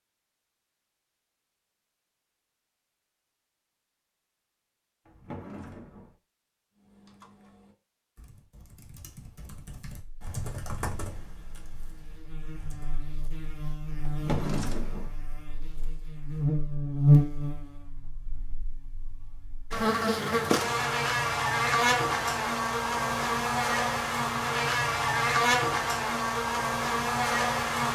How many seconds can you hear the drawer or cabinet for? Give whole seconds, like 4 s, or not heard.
2 s.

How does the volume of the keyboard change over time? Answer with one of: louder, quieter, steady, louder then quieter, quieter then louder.
louder then quieter.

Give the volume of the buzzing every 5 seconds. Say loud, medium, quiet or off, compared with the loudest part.
off, off, quiet, loud, loud, loud.